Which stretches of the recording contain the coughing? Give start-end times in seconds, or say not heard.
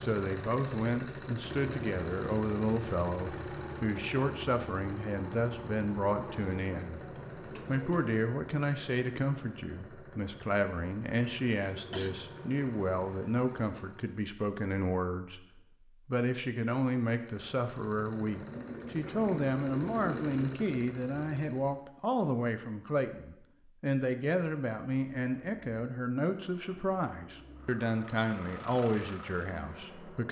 11.6-12.2.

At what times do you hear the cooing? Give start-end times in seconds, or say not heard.
6.2-8.3, 18.5-20.5.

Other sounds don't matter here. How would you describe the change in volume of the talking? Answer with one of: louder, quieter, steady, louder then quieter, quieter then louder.
steady.